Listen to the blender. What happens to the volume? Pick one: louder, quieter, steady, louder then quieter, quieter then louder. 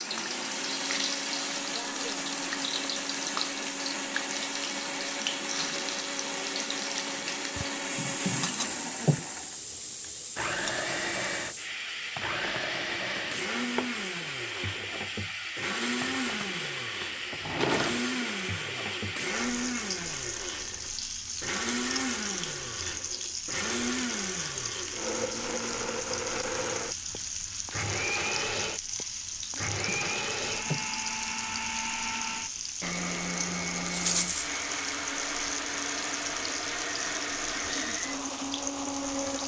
steady.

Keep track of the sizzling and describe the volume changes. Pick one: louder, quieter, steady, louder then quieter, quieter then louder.
steady.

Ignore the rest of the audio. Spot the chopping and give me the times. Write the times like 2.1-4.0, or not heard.
not heard.